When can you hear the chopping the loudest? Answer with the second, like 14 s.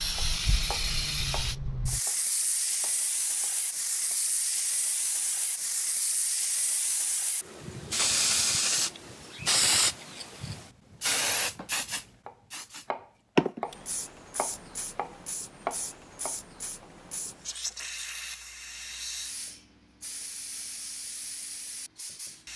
16 s.